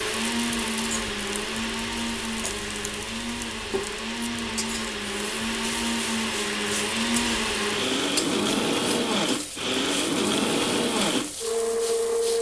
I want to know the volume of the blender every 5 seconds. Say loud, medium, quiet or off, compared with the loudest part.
medium, loud, loud.